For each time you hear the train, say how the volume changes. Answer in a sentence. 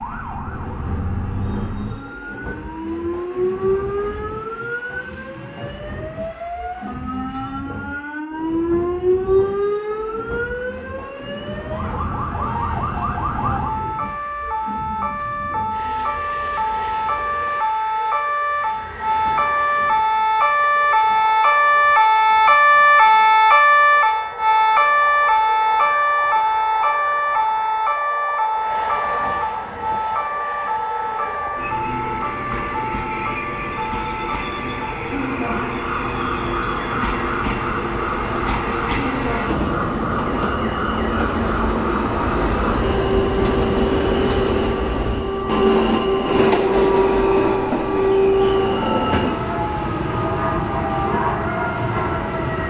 You can hear the train from 0.0 to 52.6 s, getting louder.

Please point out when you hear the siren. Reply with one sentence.
The siren can be heard from 0.0 to 52.6 s.